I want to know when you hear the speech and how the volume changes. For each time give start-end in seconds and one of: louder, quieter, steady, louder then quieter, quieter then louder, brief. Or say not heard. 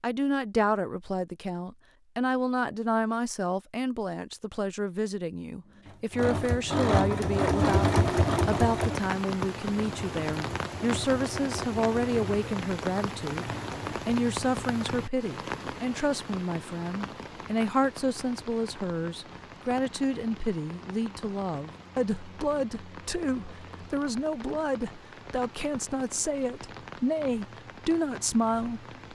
0.0-28.9 steady.